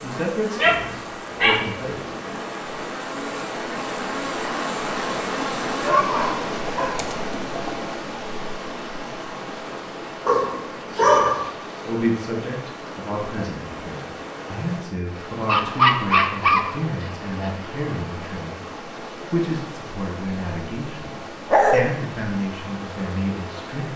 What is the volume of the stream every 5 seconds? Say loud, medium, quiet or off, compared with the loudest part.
loud, loud, medium, medium, medium.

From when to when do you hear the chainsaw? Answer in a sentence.
The chainsaw can be heard from 0.0 to 5.9 s.